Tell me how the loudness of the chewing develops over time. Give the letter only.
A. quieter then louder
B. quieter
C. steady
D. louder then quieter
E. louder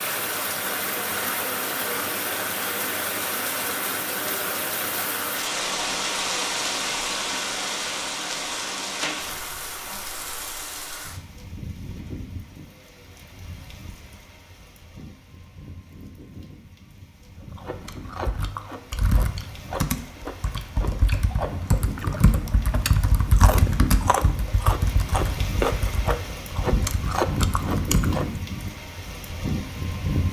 E.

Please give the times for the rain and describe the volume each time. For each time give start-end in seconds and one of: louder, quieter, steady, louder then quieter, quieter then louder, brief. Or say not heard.
0.0-30.2 quieter then louder.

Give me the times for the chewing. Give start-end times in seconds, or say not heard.
17.4-28.4.